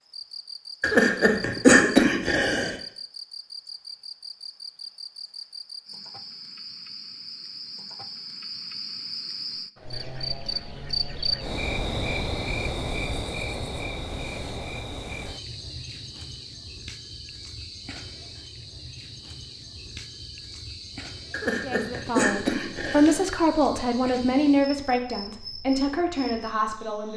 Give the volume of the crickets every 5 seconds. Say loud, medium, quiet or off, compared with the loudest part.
medium, medium, loud, medium, medium, medium.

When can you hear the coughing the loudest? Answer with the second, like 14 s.
2 s.